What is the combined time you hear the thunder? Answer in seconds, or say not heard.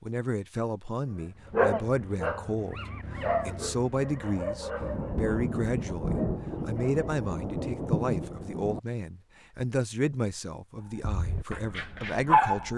4 s.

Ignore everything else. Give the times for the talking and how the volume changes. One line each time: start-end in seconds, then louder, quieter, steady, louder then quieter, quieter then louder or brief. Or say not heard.
0.0-12.7 steady.